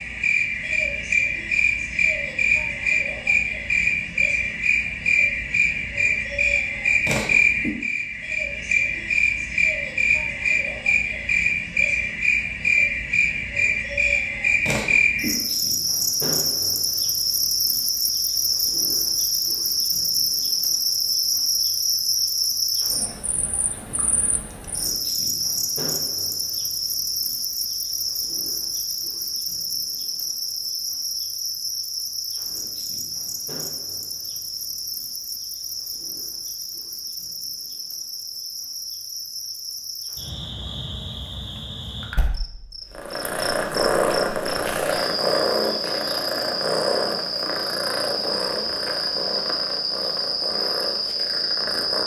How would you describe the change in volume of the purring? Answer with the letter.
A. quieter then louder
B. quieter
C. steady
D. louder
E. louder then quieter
B.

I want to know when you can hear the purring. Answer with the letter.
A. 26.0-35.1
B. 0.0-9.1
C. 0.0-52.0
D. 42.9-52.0
D.